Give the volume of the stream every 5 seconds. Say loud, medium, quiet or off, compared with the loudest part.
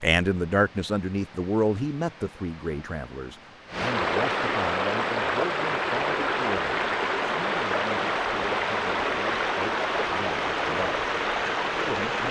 medium, loud, loud.